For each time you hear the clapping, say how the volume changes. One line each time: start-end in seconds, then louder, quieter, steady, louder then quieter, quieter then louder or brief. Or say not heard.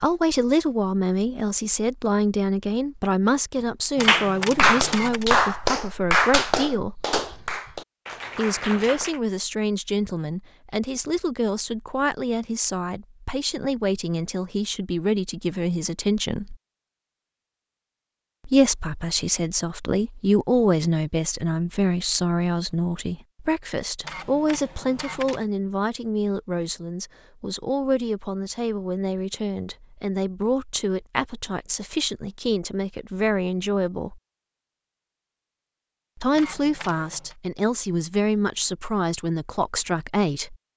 4.0-9.2 quieter.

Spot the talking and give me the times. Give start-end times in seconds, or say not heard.
0.0-7.0, 8.3-16.6, 18.4-34.2, 36.1-40.5.